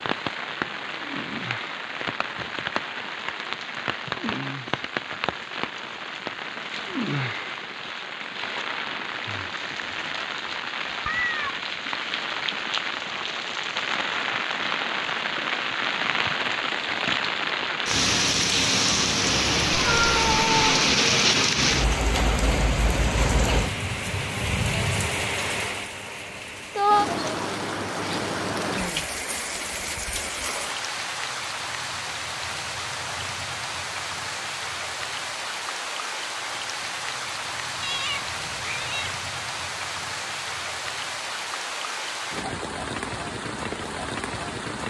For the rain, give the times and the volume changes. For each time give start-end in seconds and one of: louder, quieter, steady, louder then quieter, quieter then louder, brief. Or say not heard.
0.0-44.8 louder then quieter.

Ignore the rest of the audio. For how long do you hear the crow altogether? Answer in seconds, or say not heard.
not heard.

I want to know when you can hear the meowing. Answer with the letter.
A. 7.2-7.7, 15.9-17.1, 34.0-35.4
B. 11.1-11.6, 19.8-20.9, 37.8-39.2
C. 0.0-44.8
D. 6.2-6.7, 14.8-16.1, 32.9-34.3
B.